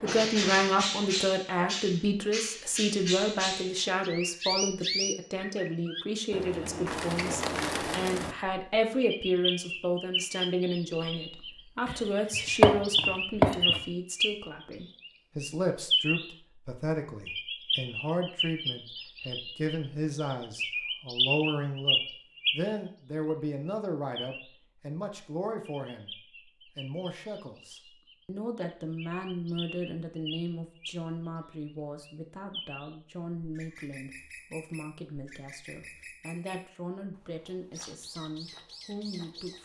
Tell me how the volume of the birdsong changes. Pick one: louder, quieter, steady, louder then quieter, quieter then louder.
quieter.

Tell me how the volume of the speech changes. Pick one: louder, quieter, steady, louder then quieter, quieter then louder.
quieter.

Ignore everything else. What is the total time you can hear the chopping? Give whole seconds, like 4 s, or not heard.
2 s.